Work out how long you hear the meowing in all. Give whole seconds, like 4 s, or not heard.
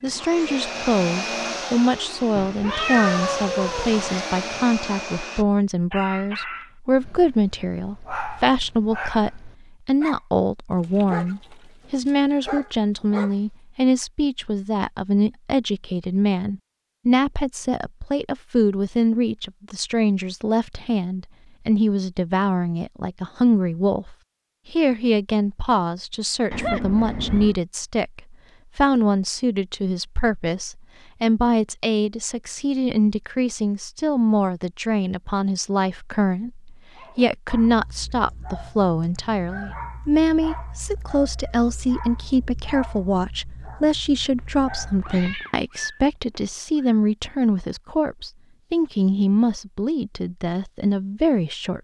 5 s.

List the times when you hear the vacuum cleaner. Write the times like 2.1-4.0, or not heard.
0.0-5.5.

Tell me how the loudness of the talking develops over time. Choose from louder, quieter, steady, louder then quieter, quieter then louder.
steady.